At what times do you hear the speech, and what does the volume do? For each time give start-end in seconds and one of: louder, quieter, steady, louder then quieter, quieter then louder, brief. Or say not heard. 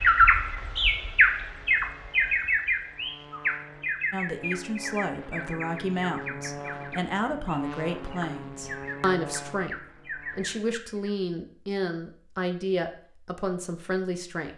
4.1-14.5 steady.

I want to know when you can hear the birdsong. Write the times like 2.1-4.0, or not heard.
0.0-11.1.